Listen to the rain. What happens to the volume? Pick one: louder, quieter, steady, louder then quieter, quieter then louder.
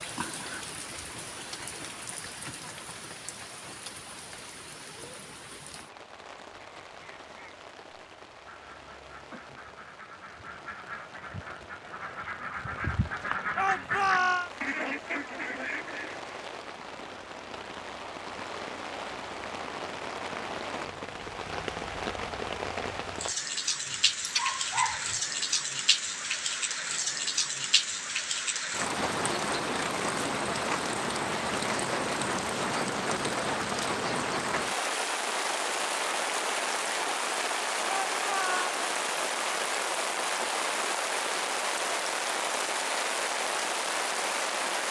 louder.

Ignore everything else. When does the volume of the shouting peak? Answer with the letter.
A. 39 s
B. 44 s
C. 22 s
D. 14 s
D.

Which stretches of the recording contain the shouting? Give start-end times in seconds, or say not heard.
13.6-14.5, 37.9-38.8.